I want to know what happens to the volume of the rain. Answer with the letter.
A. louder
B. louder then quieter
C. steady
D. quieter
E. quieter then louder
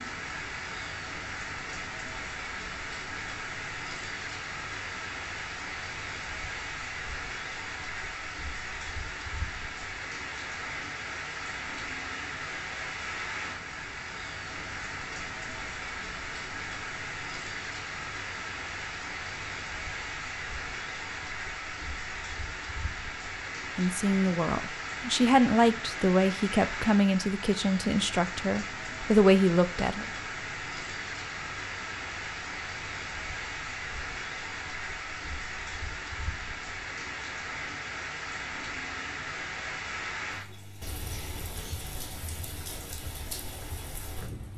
C.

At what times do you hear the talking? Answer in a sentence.
The talking can be heard from 23.8 to 30.1 s.